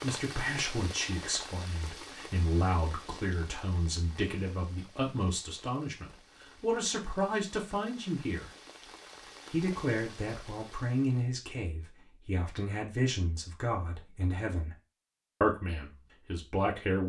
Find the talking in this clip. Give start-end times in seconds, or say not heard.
0.0-8.5, 9.5-14.8, 15.4-17.0.